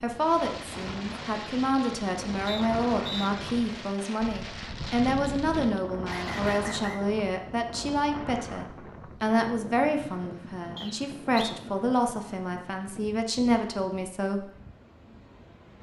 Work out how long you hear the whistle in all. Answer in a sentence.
The whistle can be heard for 3 seconds in total.